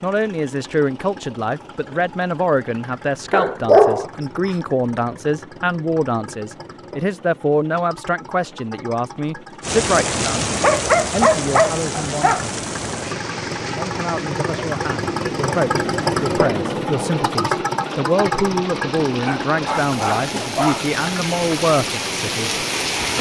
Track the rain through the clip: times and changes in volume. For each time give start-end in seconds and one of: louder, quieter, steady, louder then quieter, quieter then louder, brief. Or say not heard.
9.6-23.1 quieter then louder.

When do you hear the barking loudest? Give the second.
4 s.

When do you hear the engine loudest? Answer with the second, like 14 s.
16 s.